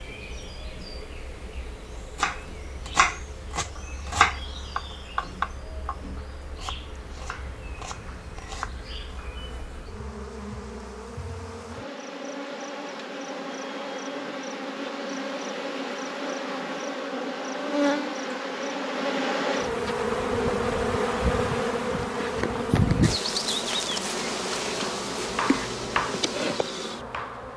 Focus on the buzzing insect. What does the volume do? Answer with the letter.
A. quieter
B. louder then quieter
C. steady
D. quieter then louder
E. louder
E.